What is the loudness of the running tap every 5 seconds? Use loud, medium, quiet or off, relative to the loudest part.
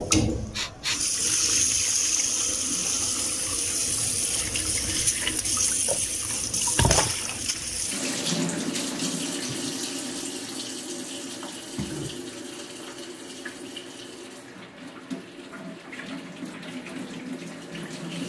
loud, loud, medium, medium.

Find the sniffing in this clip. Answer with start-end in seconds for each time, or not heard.
0.3-1.2.